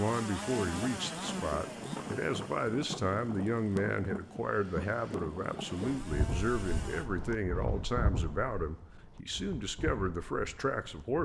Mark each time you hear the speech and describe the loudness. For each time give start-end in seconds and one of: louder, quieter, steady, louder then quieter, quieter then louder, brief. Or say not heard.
0.0-11.2 steady.